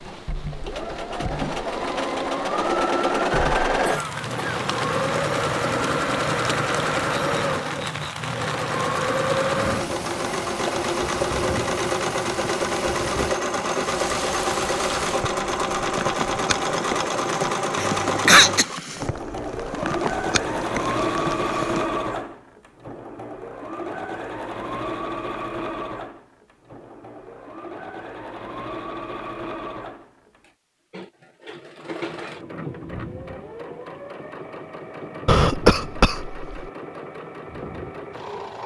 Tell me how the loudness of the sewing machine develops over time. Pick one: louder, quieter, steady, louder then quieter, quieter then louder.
quieter.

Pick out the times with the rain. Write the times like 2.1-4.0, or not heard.
0.0-21.9.